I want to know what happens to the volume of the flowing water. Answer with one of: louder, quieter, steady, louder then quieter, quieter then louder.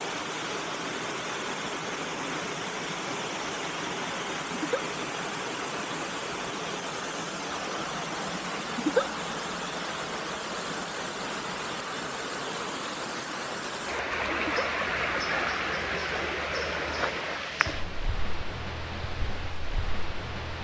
steady.